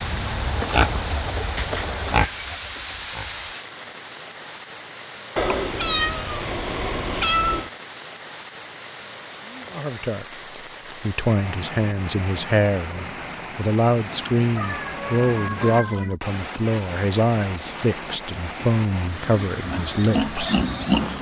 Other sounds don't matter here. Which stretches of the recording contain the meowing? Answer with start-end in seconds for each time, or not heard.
5.3-7.7, 14.2-16.2.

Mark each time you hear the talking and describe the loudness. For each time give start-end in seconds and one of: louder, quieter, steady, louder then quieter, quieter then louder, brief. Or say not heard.
9.7-10.2 brief
10.9-20.6 steady.